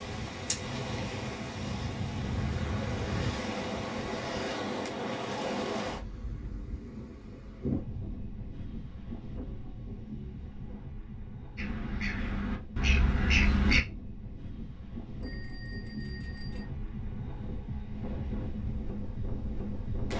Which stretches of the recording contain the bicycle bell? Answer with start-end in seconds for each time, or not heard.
15.2-16.6.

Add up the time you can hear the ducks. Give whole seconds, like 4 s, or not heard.
2 s.